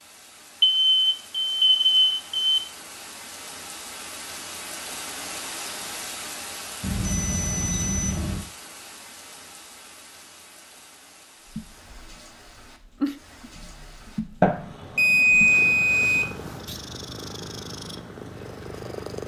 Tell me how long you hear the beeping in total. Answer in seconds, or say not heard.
6 s.